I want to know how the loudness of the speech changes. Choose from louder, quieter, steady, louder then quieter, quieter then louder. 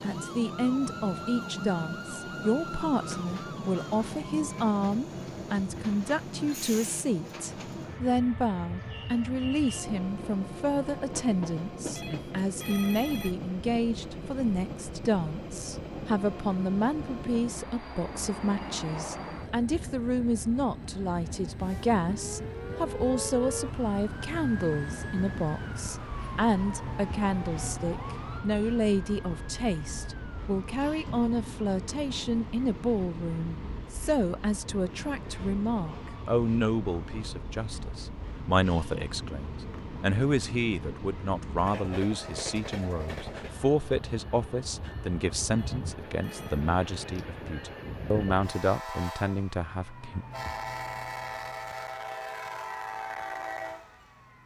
steady.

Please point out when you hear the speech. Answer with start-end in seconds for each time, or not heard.
0.0-50.2.